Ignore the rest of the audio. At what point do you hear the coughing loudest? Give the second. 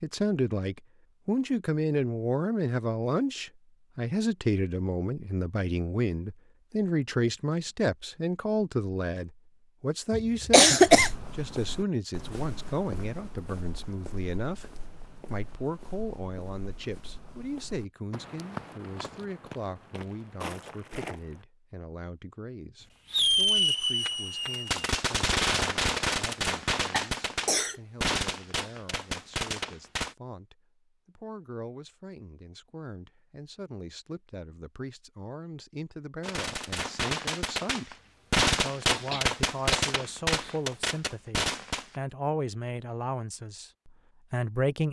11 s.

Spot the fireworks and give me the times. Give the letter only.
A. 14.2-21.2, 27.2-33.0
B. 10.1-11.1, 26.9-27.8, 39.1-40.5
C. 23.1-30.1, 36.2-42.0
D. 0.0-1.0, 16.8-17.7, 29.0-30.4
C.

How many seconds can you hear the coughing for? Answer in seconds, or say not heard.
3 s.